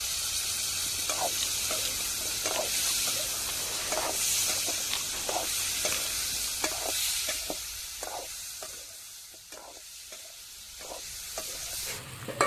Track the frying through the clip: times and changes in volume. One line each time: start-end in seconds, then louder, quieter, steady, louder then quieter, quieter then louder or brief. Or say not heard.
0.0-12.4 quieter.